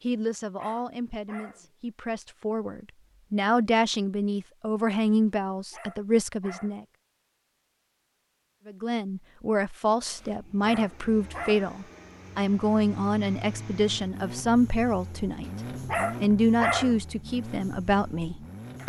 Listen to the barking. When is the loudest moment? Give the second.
17 s.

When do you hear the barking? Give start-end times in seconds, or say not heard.
0.6-1.7, 5.7-6.8, 10.6-11.7, 15.8-17.0.